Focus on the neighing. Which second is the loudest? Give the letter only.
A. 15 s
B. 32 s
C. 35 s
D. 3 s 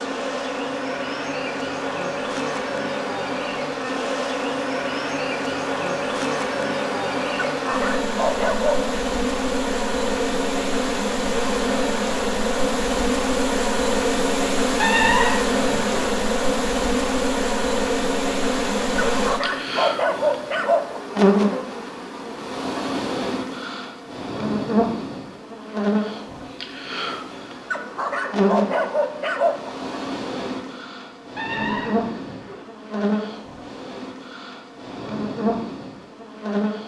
A.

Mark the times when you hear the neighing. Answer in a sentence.
You can hear the neighing from 14.8 to 16.1 s and from 31.4 to 32.6 s.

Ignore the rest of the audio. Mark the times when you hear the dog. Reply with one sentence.
The dog can be heard from 7.5 to 8.9 s, from 18.9 to 21.0 s and from 27.7 to 29.7 s.